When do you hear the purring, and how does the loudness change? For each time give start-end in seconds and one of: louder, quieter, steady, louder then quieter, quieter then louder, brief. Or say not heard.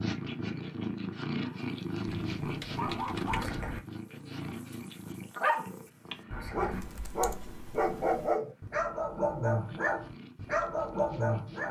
0.0-11.6 quieter.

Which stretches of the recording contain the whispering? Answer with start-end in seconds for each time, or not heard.
3.3-3.8, 6.3-6.8.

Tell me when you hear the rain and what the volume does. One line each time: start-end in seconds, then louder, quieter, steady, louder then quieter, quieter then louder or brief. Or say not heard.
not heard.